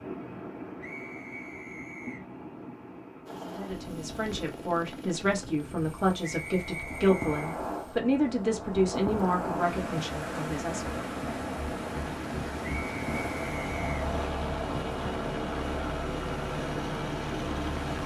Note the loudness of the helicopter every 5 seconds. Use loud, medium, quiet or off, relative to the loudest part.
medium, quiet, loud, loud.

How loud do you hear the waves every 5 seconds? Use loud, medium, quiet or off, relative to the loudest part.
medium, loud, loud, loud.